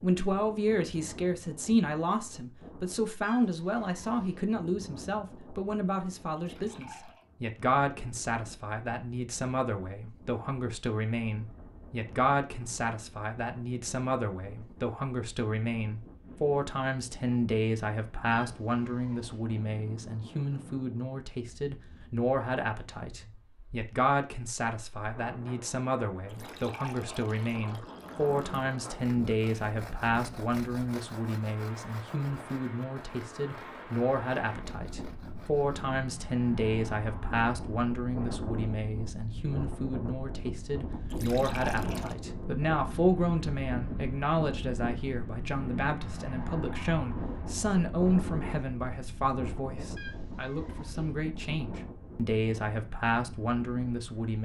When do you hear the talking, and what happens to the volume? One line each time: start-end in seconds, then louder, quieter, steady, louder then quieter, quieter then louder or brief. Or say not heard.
0.0-54.4 steady.